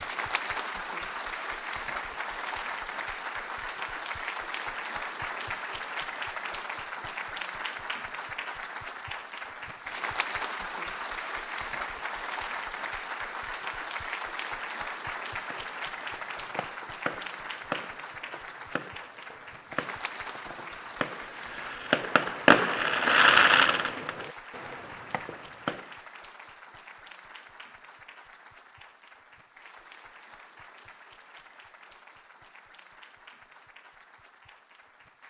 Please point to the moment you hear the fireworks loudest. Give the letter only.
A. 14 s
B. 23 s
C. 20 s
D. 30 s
B.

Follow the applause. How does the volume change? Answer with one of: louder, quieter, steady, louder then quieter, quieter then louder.
quieter.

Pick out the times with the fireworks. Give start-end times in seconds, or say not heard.
15.5-25.9.